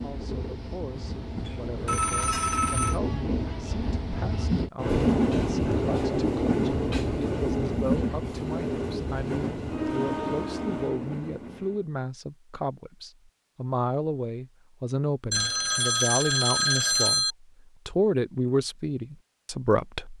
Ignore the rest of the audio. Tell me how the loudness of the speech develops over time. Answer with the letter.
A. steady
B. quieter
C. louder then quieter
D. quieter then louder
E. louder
E.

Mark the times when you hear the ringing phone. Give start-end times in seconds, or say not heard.
1.4-3.0, 15.3-17.4.